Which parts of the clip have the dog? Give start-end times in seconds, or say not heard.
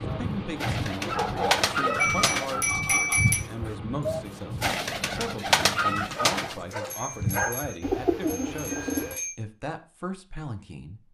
1.0-2.6, 5.9-7.6.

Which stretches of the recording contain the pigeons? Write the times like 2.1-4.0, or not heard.
0.1-9.2.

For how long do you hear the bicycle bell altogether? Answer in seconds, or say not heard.
4 s.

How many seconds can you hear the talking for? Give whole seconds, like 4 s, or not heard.
11 s.